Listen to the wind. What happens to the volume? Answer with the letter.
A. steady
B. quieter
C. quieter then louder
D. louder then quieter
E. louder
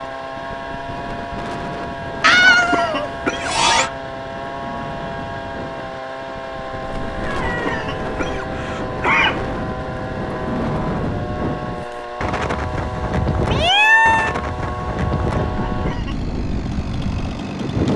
E.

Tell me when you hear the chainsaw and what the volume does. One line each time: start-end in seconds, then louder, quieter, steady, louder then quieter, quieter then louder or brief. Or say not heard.
0.0-17.9 steady.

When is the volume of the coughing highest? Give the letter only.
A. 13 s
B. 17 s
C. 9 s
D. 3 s
C.